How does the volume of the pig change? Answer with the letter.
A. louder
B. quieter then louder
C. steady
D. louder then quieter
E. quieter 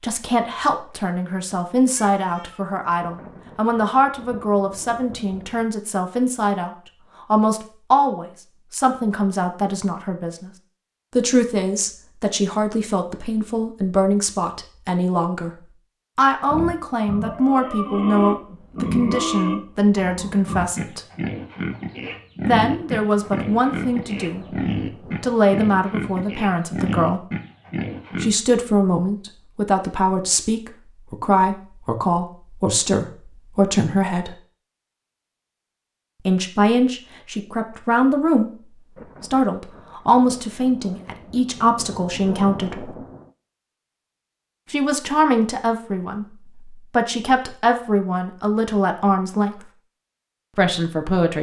C.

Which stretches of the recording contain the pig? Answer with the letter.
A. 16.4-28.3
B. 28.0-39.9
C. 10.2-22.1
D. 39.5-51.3
A.